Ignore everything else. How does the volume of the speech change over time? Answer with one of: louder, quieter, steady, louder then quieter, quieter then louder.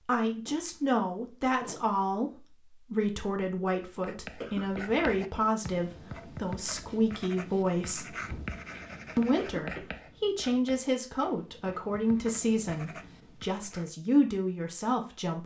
steady.